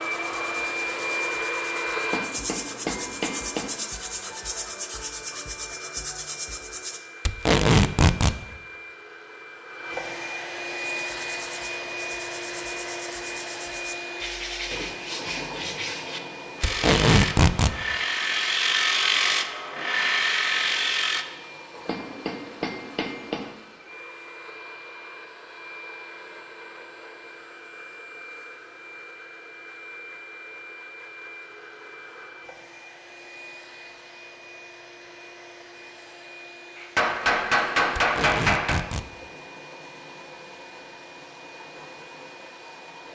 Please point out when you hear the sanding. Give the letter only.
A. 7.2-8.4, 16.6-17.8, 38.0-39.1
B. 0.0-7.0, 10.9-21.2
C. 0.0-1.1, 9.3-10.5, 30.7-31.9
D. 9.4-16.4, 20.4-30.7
B.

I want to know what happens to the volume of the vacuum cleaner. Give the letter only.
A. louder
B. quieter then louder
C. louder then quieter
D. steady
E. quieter
E.